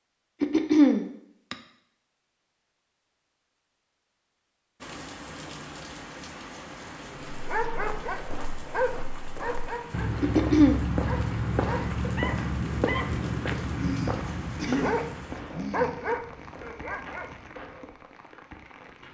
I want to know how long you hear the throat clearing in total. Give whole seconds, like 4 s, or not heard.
4 s.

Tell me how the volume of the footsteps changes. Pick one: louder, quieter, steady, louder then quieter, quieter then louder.
louder then quieter.